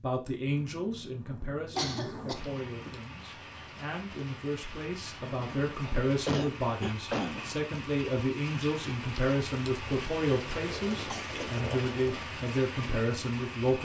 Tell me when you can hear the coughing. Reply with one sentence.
You can hear the coughing from 1.8 to 2.5 s, from 6.2 to 7.5 s and from 11.1 to 11.7 s.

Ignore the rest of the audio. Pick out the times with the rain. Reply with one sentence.
The rain can be heard from 2.3 to 13.7 s.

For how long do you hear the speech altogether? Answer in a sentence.
You can hear the speech for 14 seconds altogether.